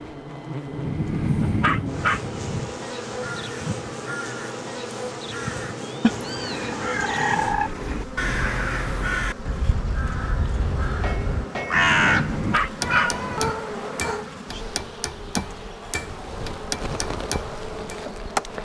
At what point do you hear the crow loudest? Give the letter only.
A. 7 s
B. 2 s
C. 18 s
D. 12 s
D.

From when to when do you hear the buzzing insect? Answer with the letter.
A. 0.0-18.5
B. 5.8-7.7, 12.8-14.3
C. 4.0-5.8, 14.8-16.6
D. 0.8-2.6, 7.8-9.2
A.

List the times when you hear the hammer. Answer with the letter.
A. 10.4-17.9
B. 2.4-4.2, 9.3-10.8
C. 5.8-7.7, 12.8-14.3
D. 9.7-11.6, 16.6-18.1
A.